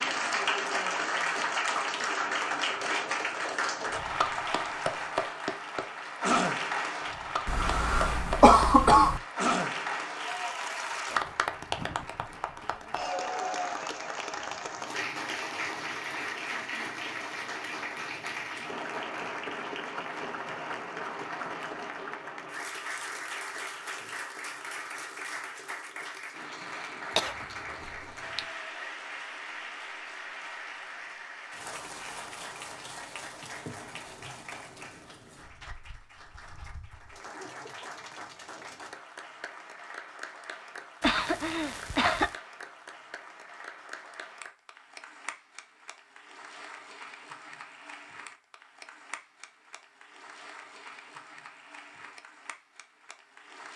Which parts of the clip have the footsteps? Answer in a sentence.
You can't hear the footsteps here.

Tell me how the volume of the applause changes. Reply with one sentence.
The volume of the applause goes down.